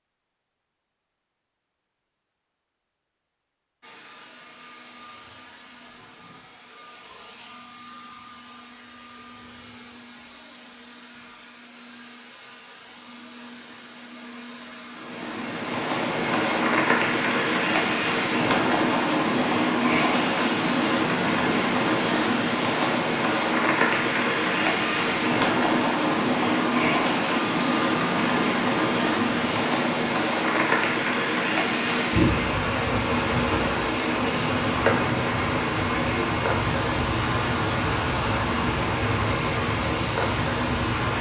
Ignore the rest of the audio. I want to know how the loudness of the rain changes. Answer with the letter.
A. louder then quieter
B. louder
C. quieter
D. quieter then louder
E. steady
E.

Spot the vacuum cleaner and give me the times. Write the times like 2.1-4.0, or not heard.
3.8-41.1.